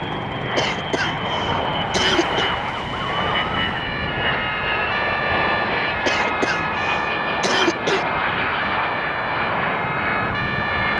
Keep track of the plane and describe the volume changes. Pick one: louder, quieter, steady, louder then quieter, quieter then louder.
steady.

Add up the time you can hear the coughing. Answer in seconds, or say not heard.
4 s.